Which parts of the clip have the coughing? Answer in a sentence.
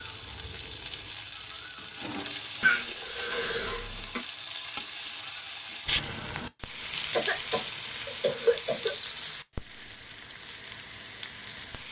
You can hear the coughing from 2.6 to 4.2 s and from 7.1 to 8.9 s.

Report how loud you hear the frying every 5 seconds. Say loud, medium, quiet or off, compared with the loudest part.
loud, loud, medium.